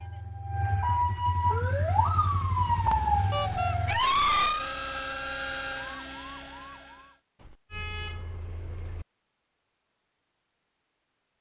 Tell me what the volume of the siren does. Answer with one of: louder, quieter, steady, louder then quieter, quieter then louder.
quieter.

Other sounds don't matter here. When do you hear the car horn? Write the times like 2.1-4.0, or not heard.
3.3-3.8, 7.4-9.1.